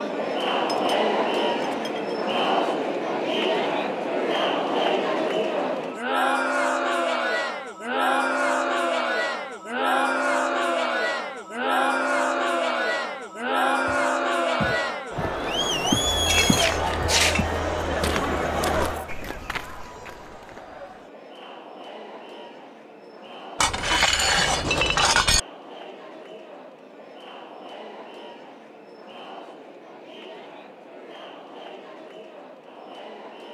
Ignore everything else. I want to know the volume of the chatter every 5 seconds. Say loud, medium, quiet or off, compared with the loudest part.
loud, loud, loud, loud, quiet, quiet, quiet.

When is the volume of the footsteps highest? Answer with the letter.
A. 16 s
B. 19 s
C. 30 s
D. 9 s
A.